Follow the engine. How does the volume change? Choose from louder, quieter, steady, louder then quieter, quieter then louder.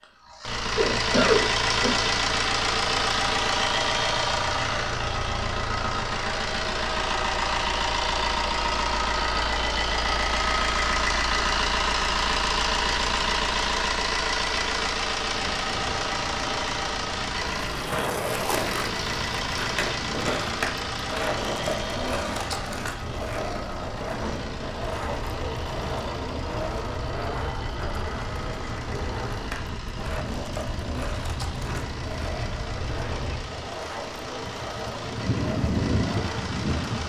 quieter.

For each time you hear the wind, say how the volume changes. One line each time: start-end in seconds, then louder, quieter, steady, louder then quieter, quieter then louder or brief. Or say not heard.
15.2-37.0 louder.